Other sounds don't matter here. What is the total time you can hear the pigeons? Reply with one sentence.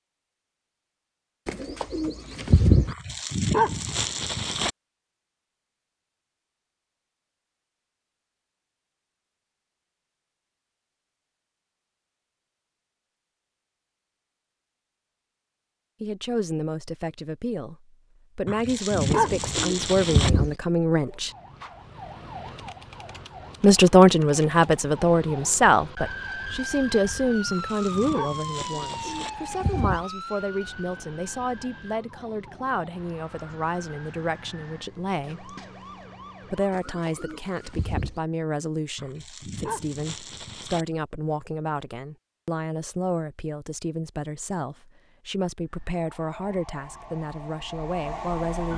The pigeons can be heard for 6 seconds in total.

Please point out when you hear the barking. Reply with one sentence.
You can hear the barking from 2.9 to 4.7 s, from 18.4 to 20.3 s, from 27.4 to 29.3 s and from 39.0 to 40.9 s.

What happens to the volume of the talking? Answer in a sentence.
The loudness of the talking goes down.